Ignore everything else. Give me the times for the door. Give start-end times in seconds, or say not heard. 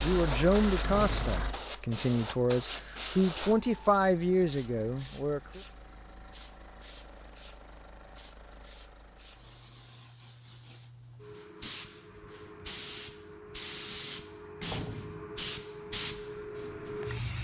0.8-1.6, 14.6-15.3.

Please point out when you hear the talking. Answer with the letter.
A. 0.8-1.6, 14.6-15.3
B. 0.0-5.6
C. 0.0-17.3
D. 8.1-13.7
B.